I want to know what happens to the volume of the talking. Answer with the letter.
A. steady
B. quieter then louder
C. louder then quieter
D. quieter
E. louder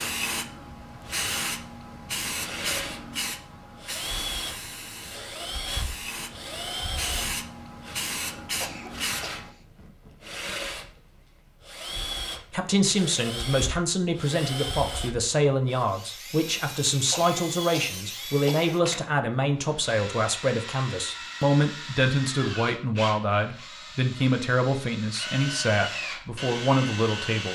A.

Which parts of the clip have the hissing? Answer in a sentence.
You can hear the hissing from 0.0 to 9.5 s.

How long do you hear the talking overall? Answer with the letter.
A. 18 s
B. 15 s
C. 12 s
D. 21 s
B.